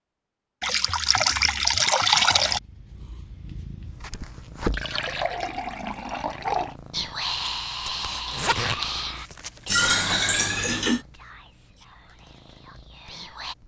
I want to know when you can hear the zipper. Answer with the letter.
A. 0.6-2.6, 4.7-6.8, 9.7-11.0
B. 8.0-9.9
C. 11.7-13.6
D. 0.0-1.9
B.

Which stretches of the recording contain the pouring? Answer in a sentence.
You can hear the pouring from 0.6 to 2.6 s, from 4.7 to 6.8 s and from 9.7 to 11.0 s.